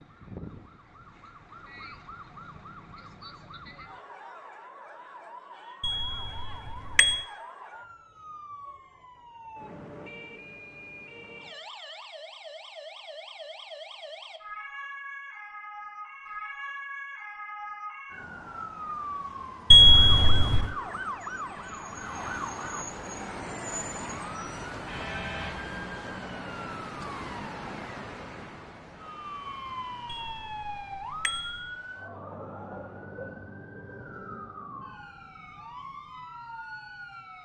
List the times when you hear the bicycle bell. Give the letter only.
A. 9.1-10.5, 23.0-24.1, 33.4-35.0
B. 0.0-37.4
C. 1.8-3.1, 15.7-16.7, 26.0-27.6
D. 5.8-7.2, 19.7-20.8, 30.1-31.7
D.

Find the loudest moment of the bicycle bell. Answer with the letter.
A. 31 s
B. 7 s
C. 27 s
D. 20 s
D.